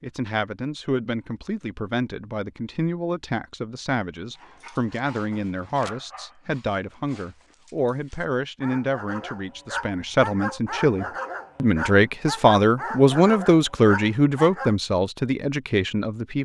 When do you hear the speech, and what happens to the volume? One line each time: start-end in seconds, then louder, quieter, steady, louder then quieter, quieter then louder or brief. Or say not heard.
0.0-16.4 louder.